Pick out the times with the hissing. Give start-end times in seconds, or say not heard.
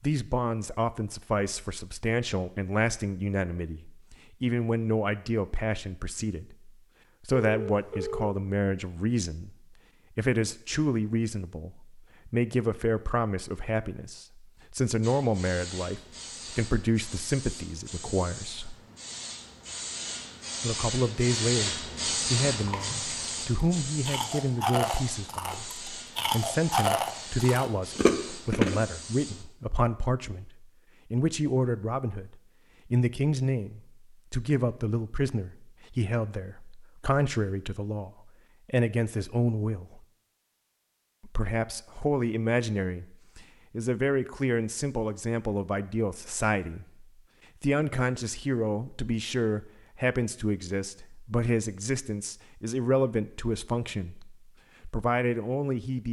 15.0-29.4.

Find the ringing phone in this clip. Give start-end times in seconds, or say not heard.
7.4-8.3.